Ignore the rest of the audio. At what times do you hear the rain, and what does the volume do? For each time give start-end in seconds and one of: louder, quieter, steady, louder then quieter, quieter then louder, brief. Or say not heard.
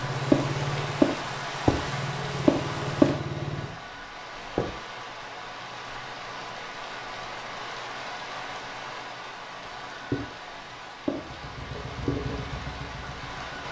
0.0-13.6 quieter.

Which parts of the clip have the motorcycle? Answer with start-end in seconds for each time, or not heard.
0.0-3.7, 11.1-13.6.